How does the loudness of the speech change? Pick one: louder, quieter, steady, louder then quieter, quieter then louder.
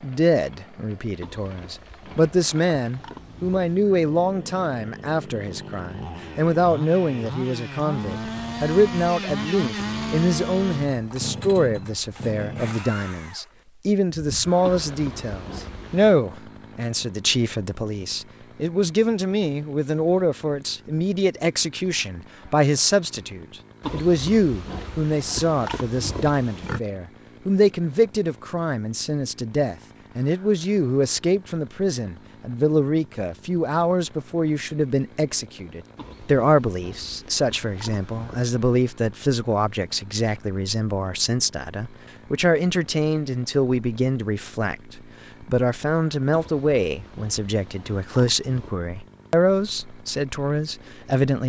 steady.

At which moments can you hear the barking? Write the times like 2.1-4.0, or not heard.
not heard.